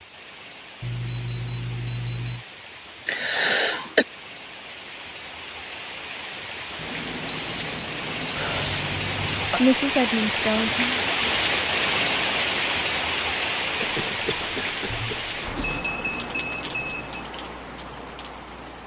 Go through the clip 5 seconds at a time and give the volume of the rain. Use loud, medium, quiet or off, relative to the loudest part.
quiet, medium, loud, medium.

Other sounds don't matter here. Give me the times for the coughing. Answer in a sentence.
The coughing can be heard from 3.0 to 4.0 s, from 8.3 to 9.6 s and from 13.8 to 15.8 s.